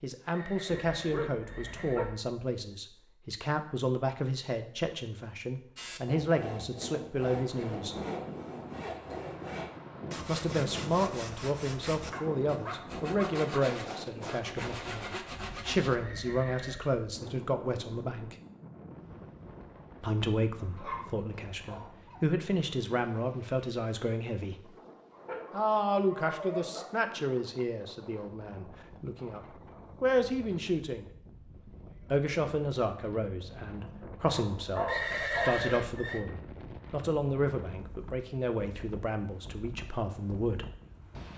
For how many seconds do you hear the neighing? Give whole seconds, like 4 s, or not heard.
4 s.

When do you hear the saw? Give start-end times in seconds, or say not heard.
5.8-16.0.